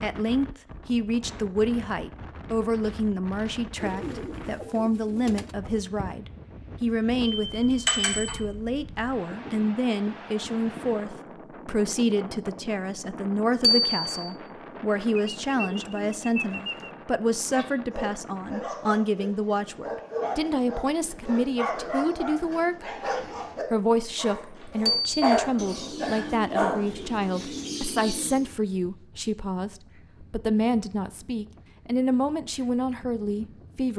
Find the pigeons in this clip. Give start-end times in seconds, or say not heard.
3.8-5.5, 15.2-16.9, 25.6-28.6.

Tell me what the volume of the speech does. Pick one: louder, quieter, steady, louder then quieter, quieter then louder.
steady.